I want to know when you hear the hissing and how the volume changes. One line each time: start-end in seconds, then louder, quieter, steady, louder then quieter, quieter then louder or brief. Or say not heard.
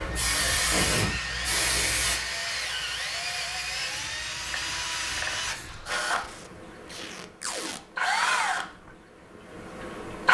0.0-5.8 quieter.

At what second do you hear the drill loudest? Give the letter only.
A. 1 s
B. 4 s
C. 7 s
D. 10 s
D.